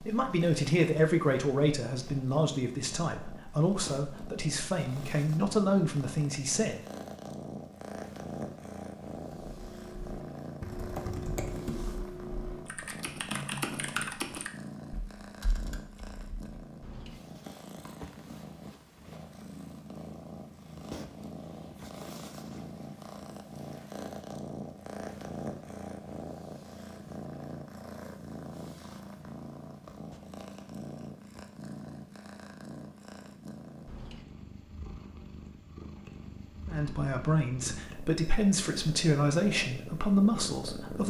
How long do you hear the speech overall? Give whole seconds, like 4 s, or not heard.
11 s.